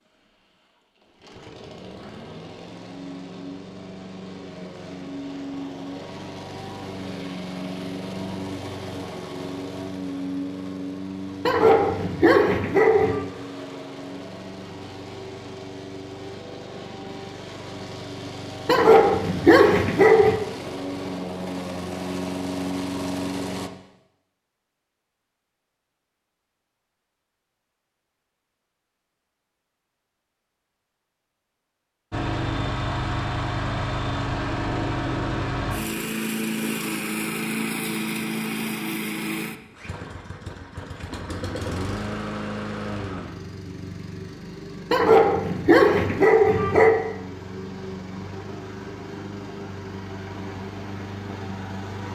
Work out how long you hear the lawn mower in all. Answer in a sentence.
You can hear the lawn mower for 44 seconds altogether.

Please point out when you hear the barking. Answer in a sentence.
The barking can be heard from 11.4 to 13.2 s, from 18.6 to 20.4 s and from 44.9 to 46.9 s.